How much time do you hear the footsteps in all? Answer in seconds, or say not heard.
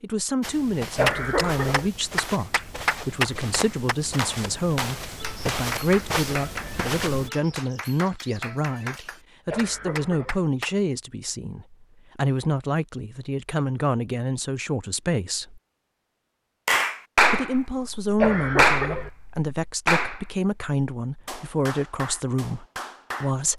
7 s.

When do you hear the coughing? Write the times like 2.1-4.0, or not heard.
0.9-1.9, 9.4-10.4, 18.1-19.1.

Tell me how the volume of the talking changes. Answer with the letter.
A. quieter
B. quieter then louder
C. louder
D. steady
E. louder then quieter
D.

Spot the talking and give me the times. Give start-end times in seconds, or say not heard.
0.0-15.6, 17.3-23.5.